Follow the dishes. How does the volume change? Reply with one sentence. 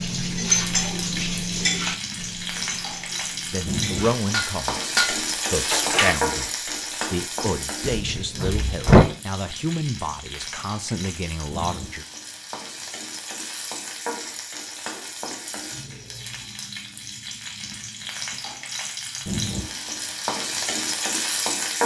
The loudness of the dishes goes down, then up.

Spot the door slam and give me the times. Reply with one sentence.
You can hear the door slam from 7.8 to 9.1 s.